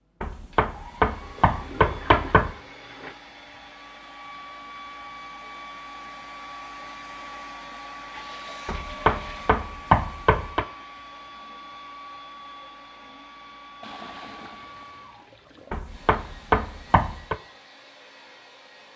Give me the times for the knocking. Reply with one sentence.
The knocking can be heard from 0.2 to 2.5 s, from 8.7 to 10.7 s and from 15.7 to 17.4 s.